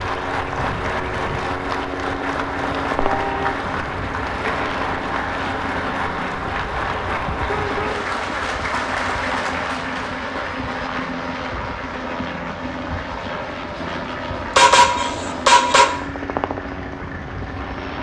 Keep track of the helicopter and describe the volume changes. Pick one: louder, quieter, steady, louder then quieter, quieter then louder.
steady.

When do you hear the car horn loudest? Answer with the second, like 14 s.
15 s.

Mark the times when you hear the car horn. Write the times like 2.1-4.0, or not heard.
3.0-3.6, 7.5-8.1, 14.6-15.9.